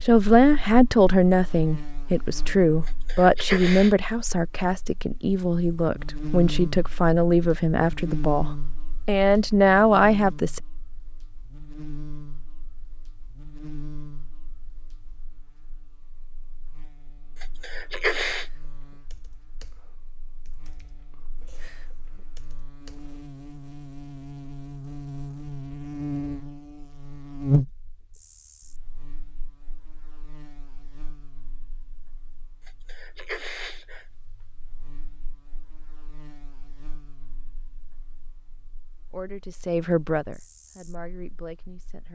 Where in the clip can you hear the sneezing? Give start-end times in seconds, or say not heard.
2.9-4.0, 17.4-18.4, 32.6-34.0.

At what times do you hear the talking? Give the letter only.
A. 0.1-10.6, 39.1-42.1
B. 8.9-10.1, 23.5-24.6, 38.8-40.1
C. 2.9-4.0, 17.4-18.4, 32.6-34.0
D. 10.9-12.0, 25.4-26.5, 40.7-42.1
A.